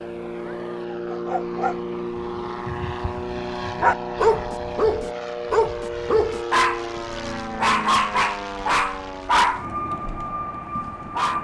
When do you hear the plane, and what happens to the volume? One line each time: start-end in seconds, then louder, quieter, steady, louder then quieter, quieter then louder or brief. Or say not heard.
0.0-11.4 steady.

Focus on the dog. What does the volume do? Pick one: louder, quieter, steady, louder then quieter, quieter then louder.
louder.